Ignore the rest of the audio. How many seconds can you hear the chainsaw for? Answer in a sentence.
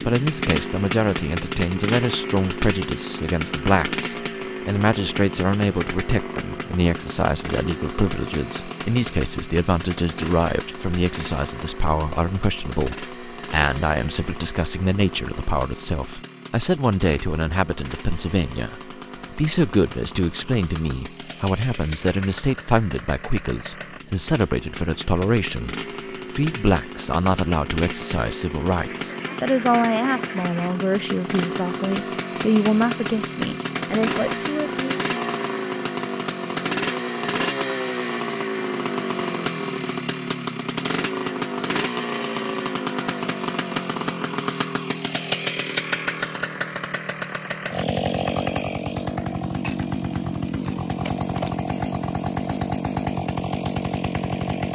You can hear the chainsaw for 55 seconds altogether.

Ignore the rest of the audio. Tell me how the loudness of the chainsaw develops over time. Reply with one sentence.
The loudness of the chainsaw goes down, then up.